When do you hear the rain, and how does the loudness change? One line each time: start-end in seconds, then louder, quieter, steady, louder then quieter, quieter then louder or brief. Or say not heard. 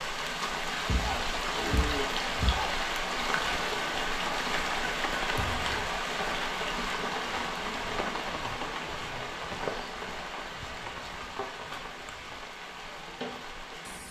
0.0-14.0 quieter.